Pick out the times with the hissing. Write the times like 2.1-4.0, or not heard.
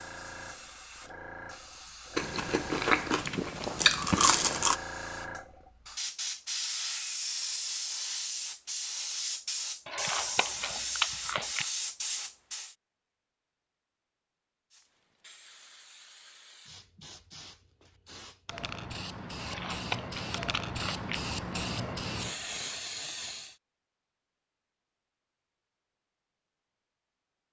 0.0-12.8, 14.7-23.6.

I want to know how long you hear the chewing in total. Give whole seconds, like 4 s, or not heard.
6 s.